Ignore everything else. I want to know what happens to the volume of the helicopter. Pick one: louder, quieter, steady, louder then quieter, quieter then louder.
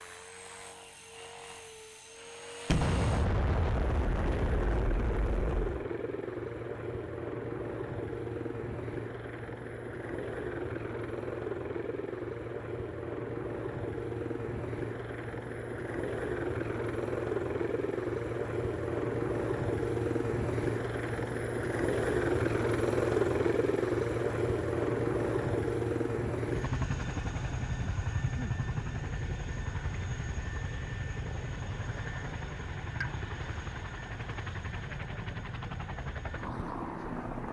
louder then quieter.